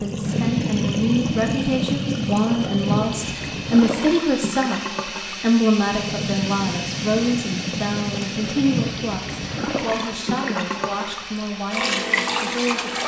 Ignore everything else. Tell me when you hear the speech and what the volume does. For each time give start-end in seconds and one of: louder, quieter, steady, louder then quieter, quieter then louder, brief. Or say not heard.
0.0-12.9 quieter.